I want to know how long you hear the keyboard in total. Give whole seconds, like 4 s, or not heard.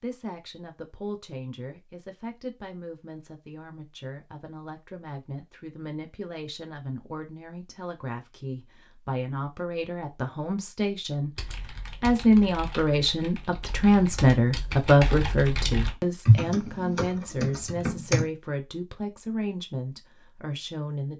7 s.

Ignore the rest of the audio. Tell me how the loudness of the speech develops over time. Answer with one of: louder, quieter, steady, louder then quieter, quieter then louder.
louder then quieter.